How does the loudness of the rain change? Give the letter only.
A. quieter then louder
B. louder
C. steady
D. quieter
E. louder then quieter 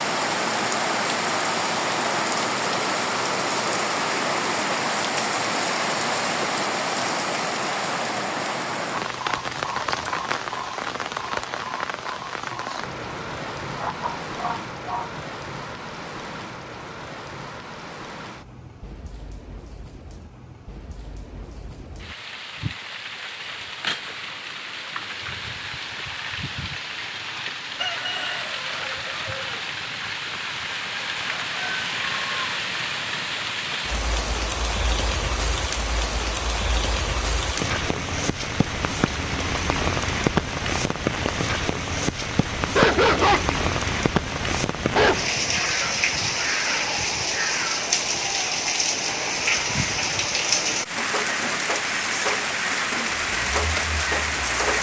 A.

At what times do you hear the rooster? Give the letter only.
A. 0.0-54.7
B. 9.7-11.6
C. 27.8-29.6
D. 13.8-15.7
C.